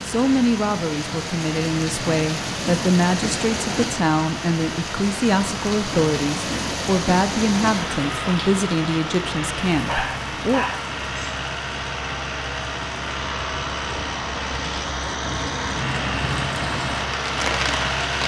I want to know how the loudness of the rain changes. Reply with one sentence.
The volume of the rain goes down, then up.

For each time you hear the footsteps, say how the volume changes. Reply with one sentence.
The footsteps can't be heard in this clip.